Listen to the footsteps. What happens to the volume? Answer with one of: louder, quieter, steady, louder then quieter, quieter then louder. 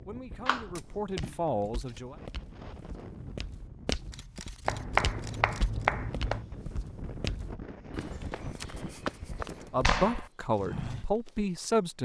louder.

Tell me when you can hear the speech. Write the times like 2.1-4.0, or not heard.
0.0-2.1, 9.7-12.0.